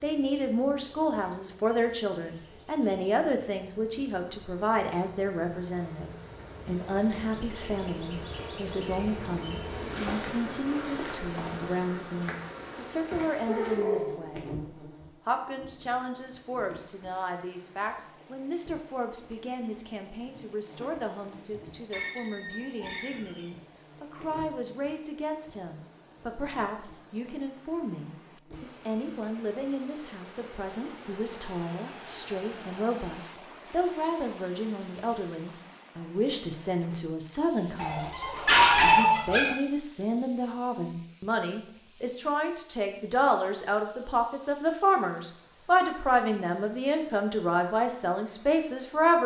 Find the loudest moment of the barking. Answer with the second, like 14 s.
39 s.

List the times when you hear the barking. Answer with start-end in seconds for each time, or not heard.
13.4-14.2, 21.9-23.4, 37.8-39.5.